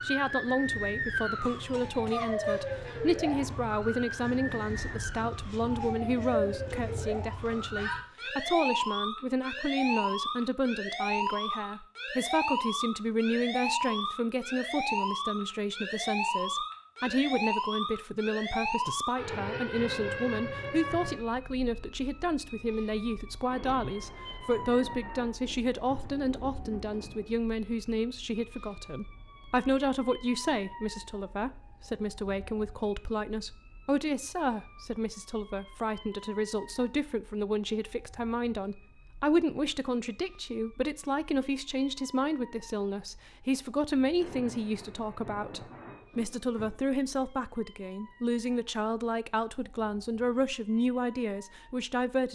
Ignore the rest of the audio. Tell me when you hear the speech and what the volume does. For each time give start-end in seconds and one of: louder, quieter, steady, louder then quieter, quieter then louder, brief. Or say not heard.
0.0-52.2 steady.